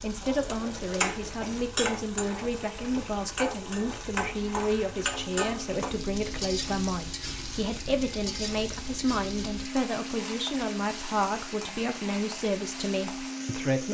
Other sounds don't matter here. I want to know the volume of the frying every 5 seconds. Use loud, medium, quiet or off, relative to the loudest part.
loud, loud, medium.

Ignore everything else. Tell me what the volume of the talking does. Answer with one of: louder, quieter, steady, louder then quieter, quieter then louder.
steady.